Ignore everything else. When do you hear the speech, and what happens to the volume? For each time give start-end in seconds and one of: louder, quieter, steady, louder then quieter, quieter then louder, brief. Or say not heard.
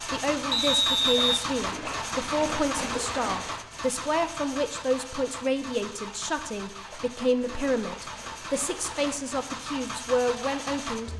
0.0-11.1 steady.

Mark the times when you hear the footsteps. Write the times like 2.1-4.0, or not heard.
not heard.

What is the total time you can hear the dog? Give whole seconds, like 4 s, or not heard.
not heard.